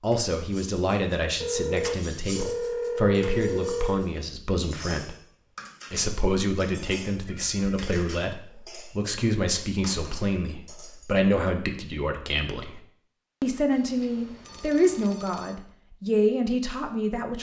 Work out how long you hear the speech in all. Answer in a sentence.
The speech can be heard for 16 seconds in total.